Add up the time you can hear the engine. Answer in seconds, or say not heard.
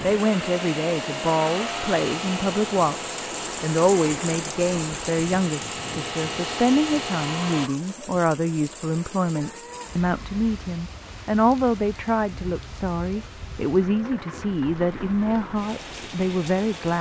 8 s.